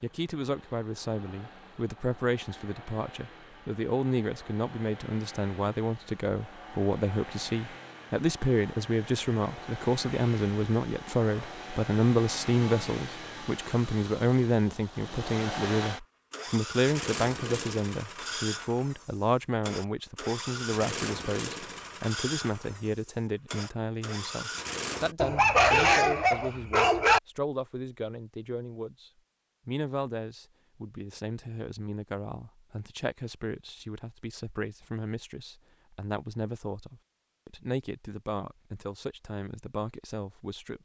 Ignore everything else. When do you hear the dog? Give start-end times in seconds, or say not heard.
25.1-27.2.